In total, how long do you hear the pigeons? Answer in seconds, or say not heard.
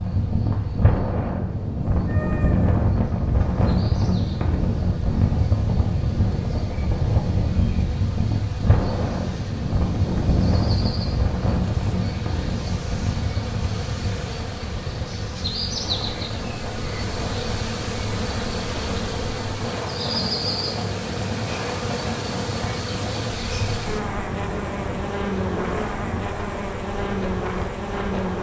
not heard.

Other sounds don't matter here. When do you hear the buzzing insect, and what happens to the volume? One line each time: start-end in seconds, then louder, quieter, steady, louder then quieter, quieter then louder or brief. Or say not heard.
0.0-28.3 louder.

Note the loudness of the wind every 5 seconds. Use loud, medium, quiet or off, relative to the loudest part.
loud, loud, loud, medium, medium, medium.